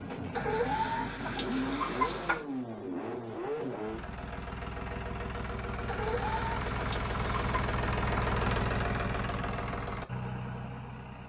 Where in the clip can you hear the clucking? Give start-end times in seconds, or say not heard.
0.3-2.4, 5.8-7.7.